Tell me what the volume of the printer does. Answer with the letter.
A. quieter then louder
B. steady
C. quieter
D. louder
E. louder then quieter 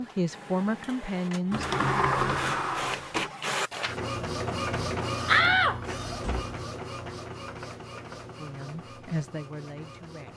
E.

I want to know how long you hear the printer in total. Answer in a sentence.
You can hear the printer for 10 seconds altogether.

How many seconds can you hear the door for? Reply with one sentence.
You can hear the door for 3 seconds altogether.